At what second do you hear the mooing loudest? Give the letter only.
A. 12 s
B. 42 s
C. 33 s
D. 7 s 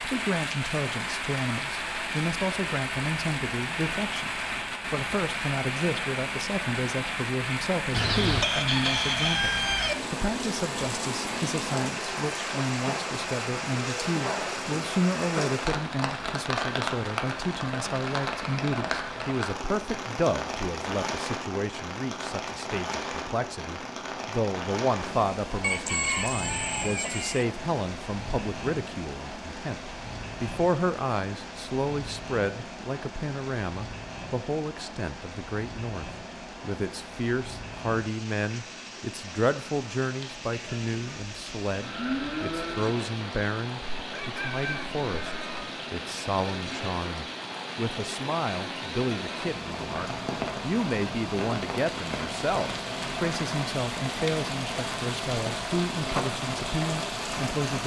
B.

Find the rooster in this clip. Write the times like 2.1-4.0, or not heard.
7.9-9.9, 25.6-27.4, 44.0-45.6.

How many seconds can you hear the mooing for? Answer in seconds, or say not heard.
2 s.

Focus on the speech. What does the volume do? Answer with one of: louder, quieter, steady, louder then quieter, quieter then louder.
steady.